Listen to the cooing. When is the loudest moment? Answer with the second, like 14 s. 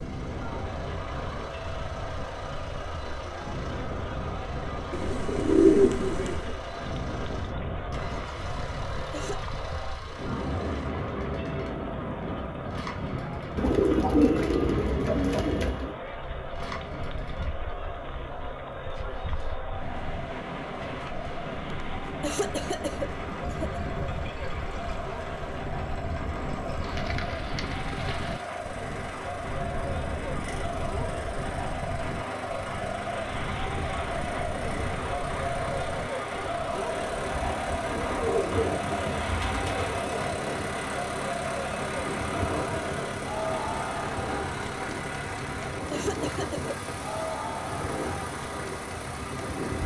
6 s.